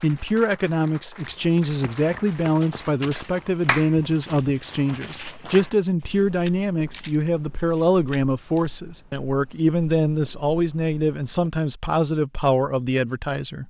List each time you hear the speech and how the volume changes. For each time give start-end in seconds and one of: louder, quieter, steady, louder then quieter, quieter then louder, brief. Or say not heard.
0.0-13.6 steady.